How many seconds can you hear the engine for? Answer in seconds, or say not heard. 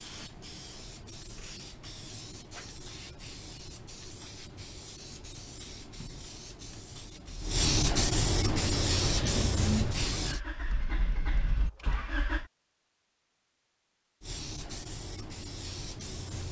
4 s.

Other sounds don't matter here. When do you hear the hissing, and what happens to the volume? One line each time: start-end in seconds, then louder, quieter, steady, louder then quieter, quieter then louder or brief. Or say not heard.
0.0-10.4 louder
14.2-16.4 brief.